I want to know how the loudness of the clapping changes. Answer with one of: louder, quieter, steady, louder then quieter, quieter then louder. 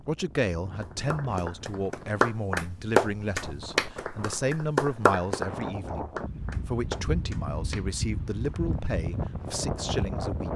quieter.